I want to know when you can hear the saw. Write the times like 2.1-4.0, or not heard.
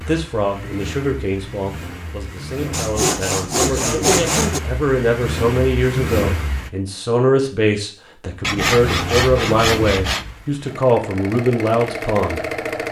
2.7-4.6, 8.4-10.3.